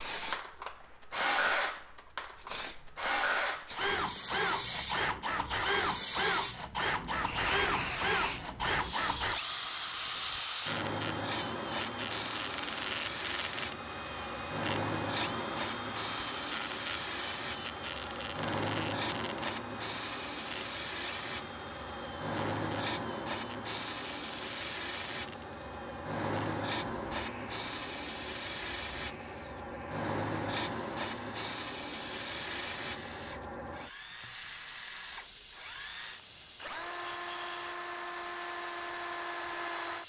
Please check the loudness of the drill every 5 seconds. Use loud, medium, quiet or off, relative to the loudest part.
loud, loud, medium, medium, quiet, quiet, quiet, medium.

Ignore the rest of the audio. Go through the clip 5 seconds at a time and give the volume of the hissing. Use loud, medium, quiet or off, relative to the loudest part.
loud, loud, loud, loud, loud, loud, loud, medium.